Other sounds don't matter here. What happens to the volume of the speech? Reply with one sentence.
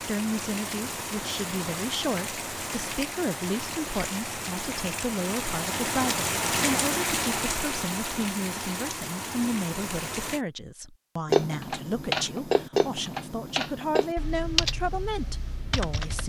The loudness of the speech stays about the same.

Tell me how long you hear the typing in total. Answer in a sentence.
You can hear the typing for 5 seconds altogether.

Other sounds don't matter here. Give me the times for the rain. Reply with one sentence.
You can hear the rain from 0.0 to 10.4 s.